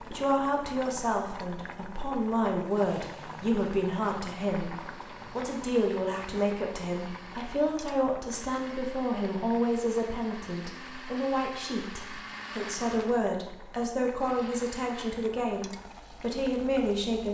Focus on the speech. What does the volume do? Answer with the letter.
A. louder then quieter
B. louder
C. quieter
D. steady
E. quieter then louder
D.